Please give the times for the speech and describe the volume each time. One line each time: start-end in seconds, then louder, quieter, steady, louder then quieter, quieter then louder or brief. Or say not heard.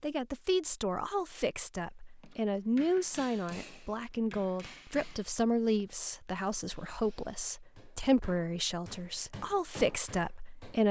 0.0-10.8 steady.